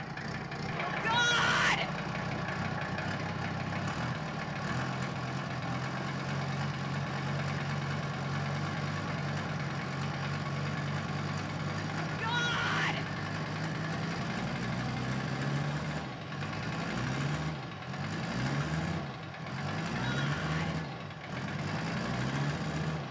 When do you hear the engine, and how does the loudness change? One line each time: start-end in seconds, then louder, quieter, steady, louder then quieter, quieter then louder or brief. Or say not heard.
0.0-23.0 steady.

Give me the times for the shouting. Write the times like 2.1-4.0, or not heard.
0.8-1.9, 12.0-13.1, 19.9-20.8.